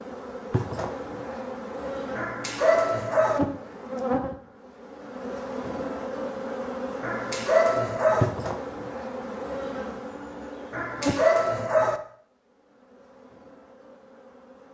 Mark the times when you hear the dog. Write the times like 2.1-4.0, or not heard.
2.1-3.4, 7.0-8.3, 10.7-12.0.